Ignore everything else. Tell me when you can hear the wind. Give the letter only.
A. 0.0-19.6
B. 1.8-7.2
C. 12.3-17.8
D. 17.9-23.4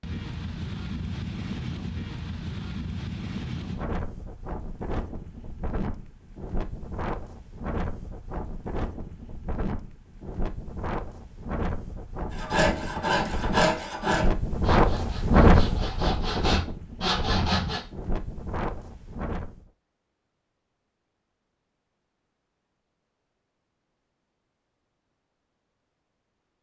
A.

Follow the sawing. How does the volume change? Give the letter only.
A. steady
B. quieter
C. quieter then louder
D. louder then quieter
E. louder
C.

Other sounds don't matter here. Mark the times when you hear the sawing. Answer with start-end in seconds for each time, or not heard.
12.3-17.8.